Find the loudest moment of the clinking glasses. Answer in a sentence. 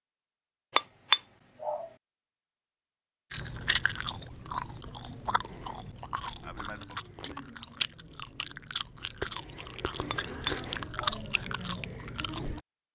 The volume of the clinking glasses peaks at 1 second.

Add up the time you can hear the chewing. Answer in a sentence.
You can hear the chewing for 9 seconds altogether.